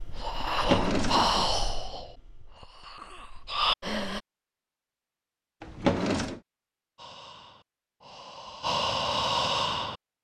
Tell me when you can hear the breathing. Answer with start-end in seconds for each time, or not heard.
0.0-4.2, 7.0-9.9.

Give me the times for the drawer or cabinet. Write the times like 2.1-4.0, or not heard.
0.5-1.6, 5.6-6.4.